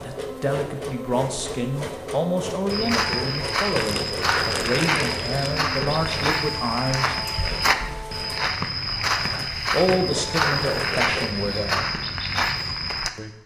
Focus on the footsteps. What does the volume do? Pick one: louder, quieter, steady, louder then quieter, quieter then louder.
steady.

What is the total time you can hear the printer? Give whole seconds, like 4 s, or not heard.
11 s.